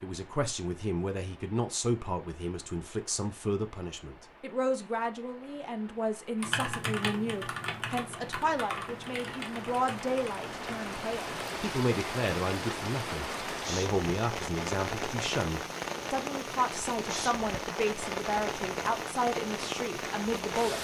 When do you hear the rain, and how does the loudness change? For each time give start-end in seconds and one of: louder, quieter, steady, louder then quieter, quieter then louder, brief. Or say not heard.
0.0-20.7 louder.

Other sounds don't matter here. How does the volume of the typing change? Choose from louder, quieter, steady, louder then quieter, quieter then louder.
quieter.